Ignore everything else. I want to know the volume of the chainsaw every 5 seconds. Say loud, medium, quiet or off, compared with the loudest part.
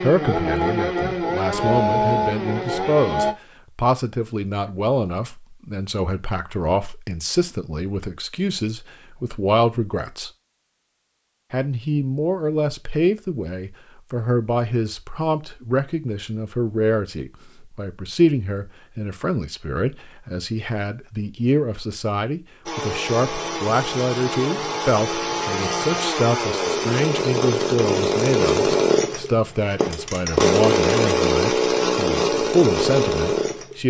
loud, off, off, off, medium, loud, loud.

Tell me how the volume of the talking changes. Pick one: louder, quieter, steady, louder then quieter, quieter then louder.
steady.